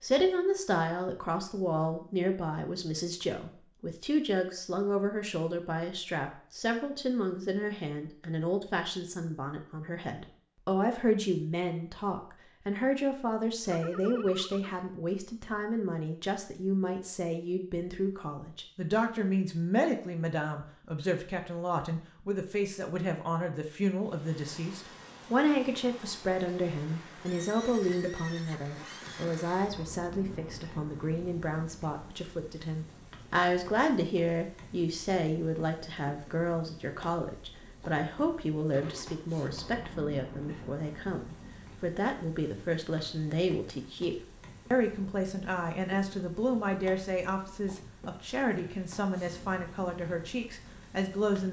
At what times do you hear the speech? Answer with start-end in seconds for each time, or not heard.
0.0-51.4.